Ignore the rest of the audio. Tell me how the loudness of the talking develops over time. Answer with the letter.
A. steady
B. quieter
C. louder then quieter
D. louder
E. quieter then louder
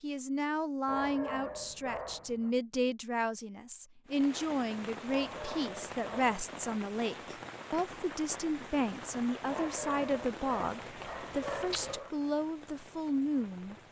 A.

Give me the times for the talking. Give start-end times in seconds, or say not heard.
0.0-13.8.